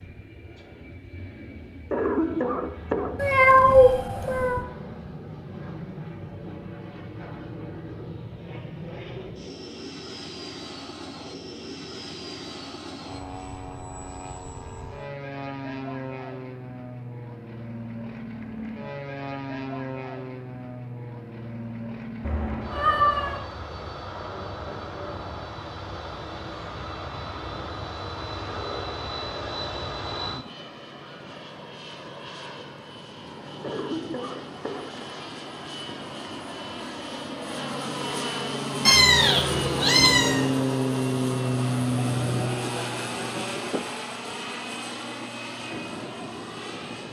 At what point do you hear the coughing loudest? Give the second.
2 s.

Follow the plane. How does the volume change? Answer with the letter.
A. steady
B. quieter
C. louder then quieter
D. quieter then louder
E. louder
E.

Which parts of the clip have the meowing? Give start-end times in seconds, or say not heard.
3.1-4.7, 22.2-23.4, 38.9-40.4.